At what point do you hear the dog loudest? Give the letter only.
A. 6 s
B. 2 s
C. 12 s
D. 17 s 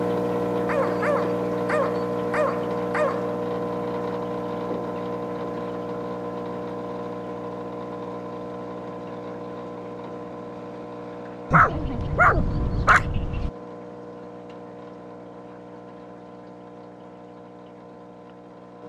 C.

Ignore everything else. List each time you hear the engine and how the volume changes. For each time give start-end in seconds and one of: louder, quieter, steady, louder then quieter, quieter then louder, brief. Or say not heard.
0.0-18.8 quieter.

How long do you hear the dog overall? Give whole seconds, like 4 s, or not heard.
5 s.